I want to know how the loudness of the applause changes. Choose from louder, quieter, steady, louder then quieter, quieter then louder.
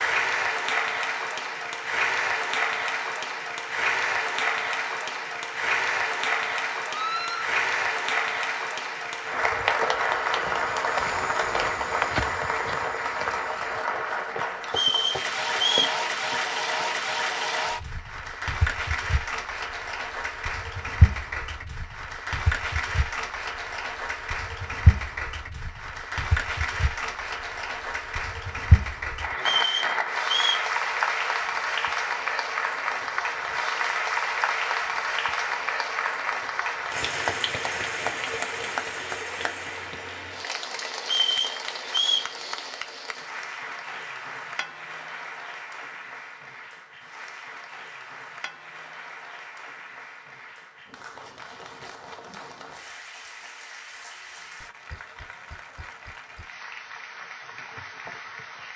quieter.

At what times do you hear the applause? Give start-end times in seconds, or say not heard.
0.0-58.7.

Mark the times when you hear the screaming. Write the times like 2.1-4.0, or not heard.
6.8-7.5.